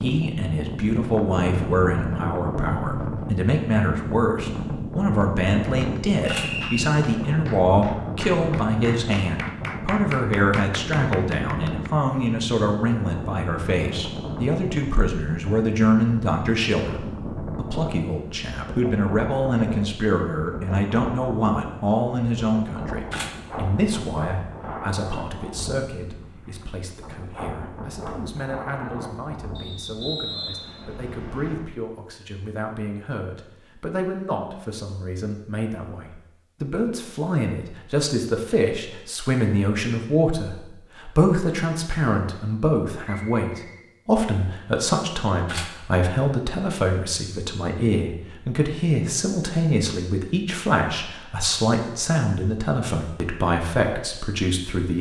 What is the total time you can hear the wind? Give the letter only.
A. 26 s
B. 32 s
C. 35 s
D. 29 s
B.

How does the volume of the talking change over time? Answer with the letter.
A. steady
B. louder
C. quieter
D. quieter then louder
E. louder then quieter
D.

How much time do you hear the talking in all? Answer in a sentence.
The talking can be heard for 55 seconds in total.